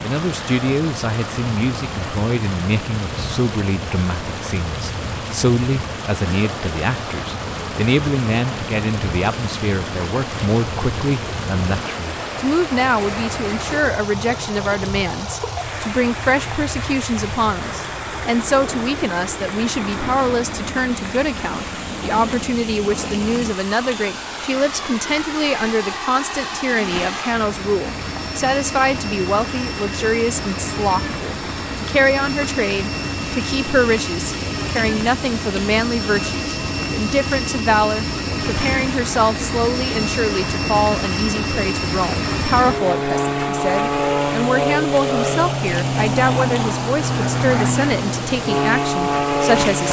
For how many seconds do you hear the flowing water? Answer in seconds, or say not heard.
50 s.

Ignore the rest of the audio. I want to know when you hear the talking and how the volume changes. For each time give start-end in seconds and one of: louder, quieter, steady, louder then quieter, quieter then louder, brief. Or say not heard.
0.0-49.8 steady.